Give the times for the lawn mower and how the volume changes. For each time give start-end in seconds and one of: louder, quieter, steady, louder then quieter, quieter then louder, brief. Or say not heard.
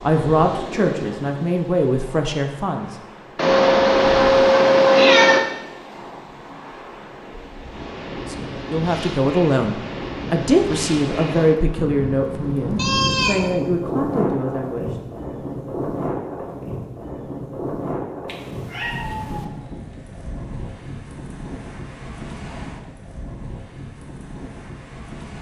not heard.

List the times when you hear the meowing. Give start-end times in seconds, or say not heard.
3.4-5.4, 12.8-13.6, 18.2-19.4.